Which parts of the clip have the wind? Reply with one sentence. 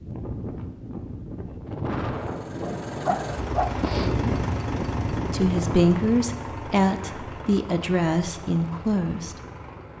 You can hear the wind from 0.0 to 6.0 s.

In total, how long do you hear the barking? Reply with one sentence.
You can hear the barking for 2 seconds altogether.